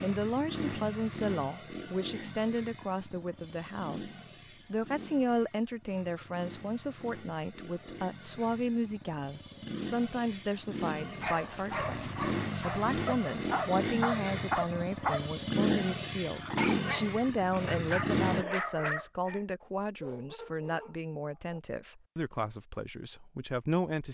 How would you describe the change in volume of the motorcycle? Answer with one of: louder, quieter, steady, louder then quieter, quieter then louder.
quieter then louder.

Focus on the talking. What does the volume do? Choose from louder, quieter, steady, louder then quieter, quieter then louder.
steady.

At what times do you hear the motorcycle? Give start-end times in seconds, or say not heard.
0.0-18.4.